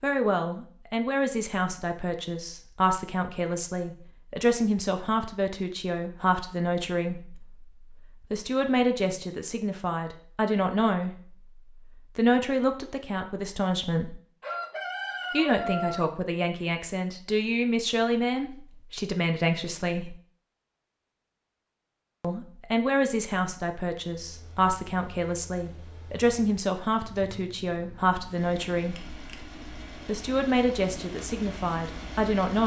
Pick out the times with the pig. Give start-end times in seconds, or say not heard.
not heard.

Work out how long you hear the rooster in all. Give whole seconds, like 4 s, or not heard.
2 s.